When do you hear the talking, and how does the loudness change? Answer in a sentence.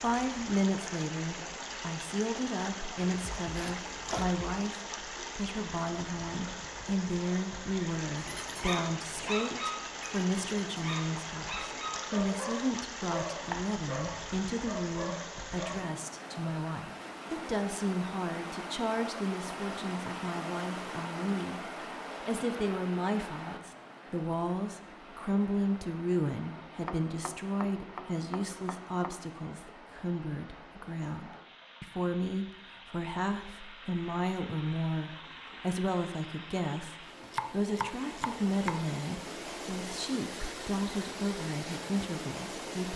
The talking can be heard from 0.0 to 42.9 s, at a steady volume.